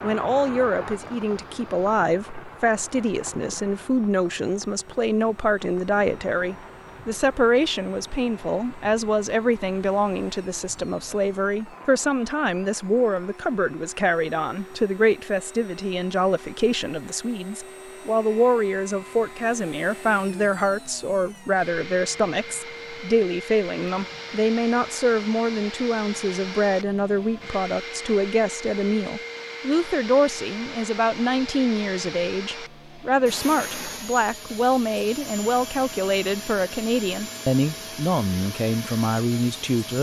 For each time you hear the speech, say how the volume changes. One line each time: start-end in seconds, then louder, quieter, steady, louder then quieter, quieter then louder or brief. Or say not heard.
0.0-39.9 steady.